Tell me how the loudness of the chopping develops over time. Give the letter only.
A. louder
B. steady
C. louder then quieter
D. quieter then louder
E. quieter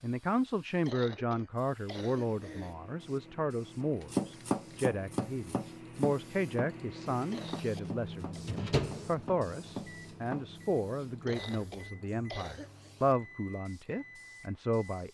D.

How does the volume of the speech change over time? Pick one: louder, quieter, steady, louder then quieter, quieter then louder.
steady.